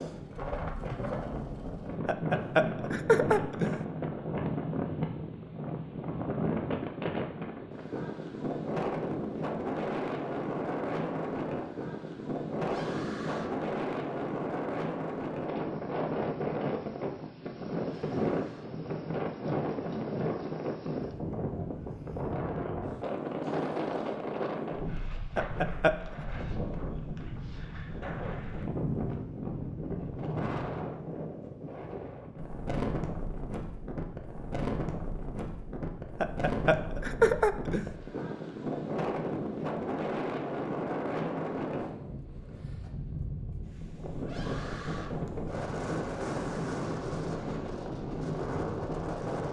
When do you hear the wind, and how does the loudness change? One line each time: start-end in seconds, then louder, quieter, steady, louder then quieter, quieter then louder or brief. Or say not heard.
0.0-49.4 steady.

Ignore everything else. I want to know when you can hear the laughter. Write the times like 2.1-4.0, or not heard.
2.0-3.8, 25.4-26.1, 36.2-37.9.